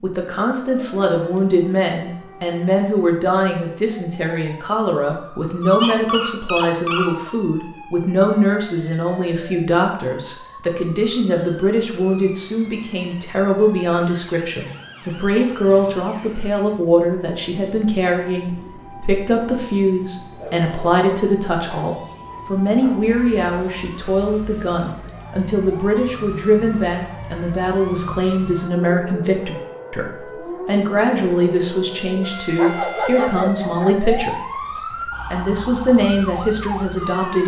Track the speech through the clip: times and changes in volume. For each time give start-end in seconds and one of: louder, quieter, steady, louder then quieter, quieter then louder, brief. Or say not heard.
0.0-37.4 steady.